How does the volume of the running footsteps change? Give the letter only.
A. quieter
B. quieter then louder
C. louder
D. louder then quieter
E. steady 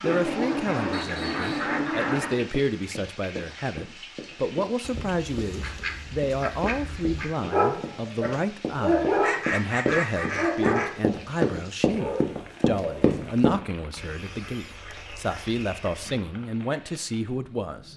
C.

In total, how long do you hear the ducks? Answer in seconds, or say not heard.
9 s.